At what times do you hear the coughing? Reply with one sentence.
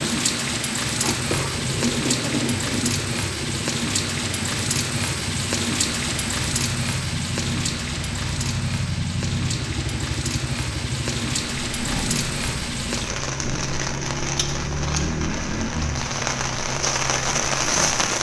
The coughing can be heard from 1.0 to 3.0 s.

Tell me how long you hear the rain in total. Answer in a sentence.
The rain can be heard for 18 seconds in total.